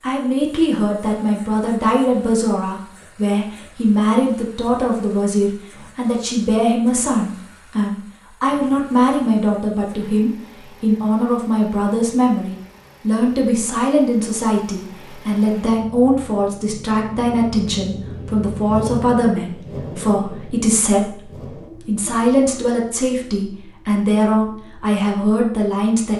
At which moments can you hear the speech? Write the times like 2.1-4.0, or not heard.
0.0-26.1.